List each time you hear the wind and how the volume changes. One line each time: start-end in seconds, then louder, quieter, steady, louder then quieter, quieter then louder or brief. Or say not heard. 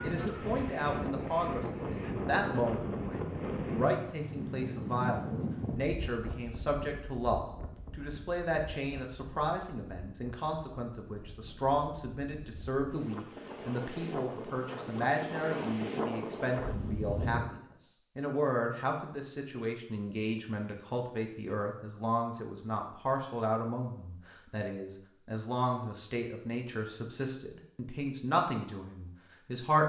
0.0-17.4 quieter then louder.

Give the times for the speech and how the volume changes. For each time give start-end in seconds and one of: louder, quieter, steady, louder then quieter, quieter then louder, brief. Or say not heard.
0.0-29.8 steady.